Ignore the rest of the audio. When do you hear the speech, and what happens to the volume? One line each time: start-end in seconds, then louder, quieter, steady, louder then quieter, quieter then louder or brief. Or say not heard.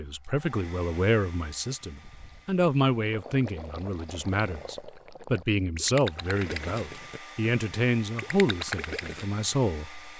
0.0-10.1 steady.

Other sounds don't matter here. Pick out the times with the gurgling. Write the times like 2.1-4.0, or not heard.
1.7-9.3.